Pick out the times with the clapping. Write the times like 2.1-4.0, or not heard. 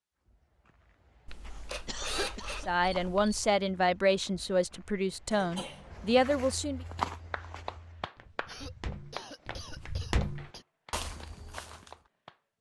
7.0-8.6, 9.2-12.5.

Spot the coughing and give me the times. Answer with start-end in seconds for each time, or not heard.
1.9-2.7, 5.3-6.2, 8.4-10.7.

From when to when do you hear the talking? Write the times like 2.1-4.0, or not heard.
2.6-6.8.